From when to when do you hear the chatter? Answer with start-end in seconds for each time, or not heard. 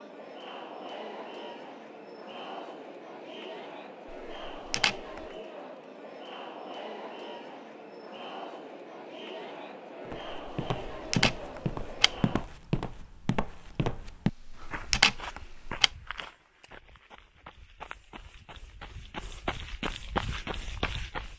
0.0-12.5.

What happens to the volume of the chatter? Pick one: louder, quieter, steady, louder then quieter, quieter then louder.
steady.